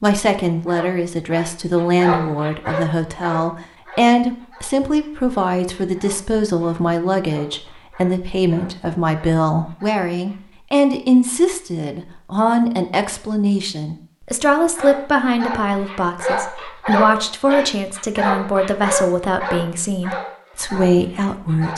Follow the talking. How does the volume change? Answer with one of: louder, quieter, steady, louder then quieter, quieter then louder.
steady.